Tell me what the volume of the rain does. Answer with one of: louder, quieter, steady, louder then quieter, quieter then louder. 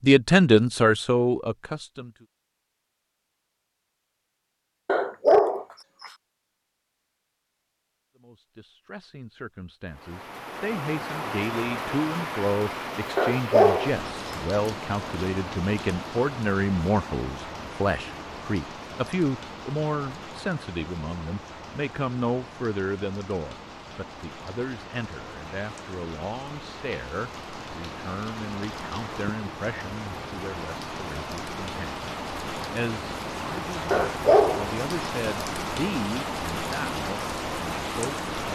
quieter then louder.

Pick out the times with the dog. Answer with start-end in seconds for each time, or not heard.
4.8-5.7, 13.2-14.3, 33.9-35.1.